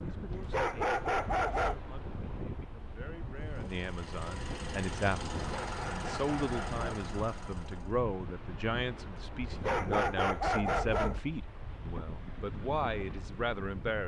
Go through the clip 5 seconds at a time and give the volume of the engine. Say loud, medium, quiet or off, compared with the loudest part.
loud, loud, off.